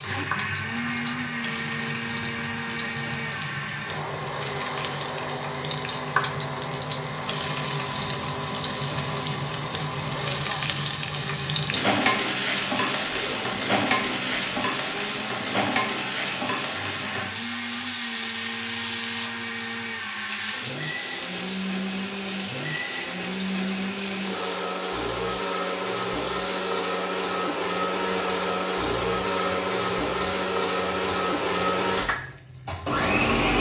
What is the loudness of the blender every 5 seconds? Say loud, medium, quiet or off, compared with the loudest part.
medium, medium, quiet, medium, medium, loud, loud.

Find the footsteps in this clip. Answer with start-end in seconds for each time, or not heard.
not heard.